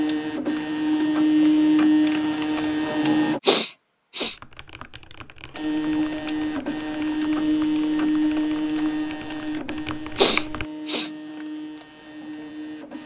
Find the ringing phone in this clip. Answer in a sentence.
The ringing phone can't be heard in this clip.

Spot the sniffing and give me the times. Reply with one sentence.
The sniffing can be heard from 3.4 to 4.3 s and from 10.2 to 11.1 s.